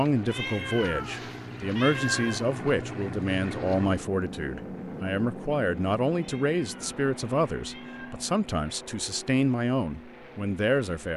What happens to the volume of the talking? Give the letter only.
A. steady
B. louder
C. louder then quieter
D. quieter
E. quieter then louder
A.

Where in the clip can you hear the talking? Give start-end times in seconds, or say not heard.
0.0-11.1.